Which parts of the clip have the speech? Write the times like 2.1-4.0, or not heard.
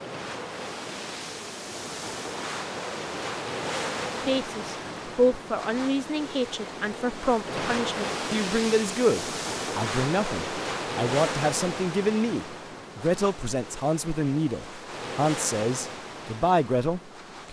4.2-17.4.